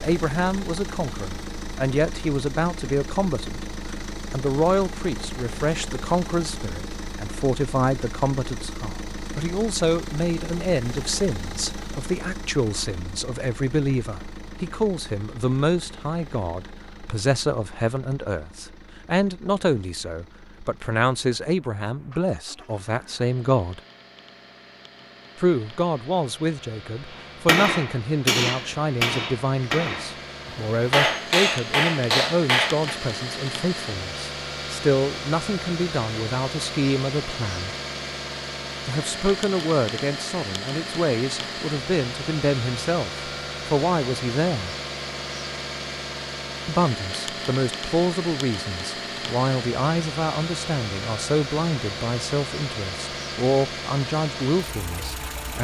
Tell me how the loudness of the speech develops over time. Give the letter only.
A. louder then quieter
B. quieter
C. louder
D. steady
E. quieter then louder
D.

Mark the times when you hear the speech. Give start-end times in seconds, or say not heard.
0.0-3.6, 4.3-23.8, 25.4-37.8, 38.9-44.8, 46.6-55.6.